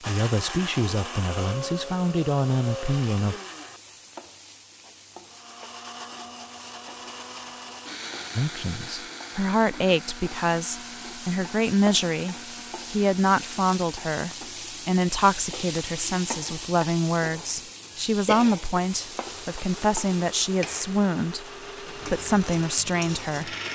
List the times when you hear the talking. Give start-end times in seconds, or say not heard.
0.1-3.4, 8.3-23.6.